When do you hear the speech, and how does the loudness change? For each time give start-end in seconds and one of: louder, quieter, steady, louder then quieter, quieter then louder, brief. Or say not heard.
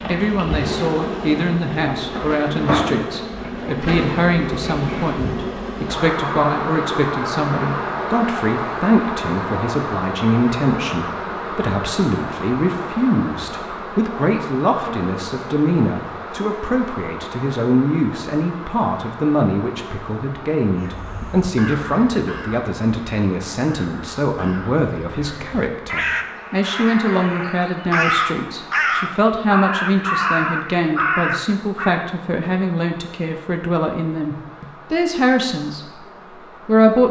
0.1-37.0 steady.